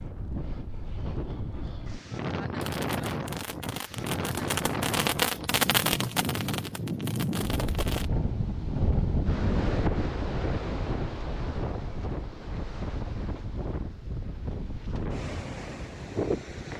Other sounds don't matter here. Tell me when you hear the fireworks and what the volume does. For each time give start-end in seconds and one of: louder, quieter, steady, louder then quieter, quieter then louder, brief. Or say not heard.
1.5-8.1 louder then quieter.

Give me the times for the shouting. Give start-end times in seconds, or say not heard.
not heard.